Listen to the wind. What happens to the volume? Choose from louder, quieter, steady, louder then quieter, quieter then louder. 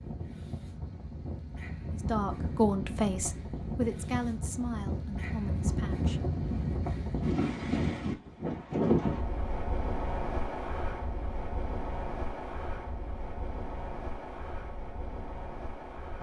louder then quieter.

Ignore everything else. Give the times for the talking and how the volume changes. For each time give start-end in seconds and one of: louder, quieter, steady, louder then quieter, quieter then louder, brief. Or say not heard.
1.9-6.2 quieter.